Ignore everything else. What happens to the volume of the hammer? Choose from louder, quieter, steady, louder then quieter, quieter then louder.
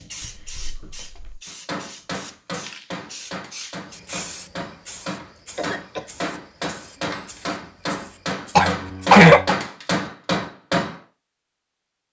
louder.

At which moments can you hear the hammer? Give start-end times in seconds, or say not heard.
1.4-11.0.